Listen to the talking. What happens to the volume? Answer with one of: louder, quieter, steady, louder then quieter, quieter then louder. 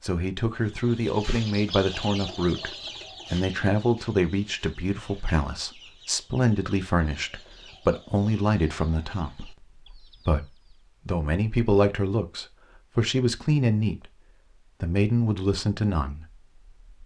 steady.